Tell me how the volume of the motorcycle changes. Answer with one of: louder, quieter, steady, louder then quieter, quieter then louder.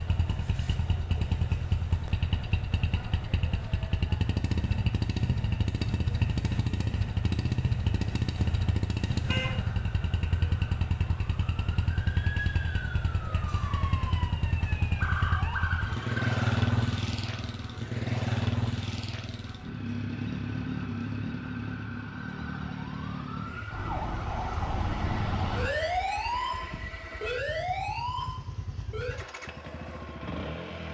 quieter.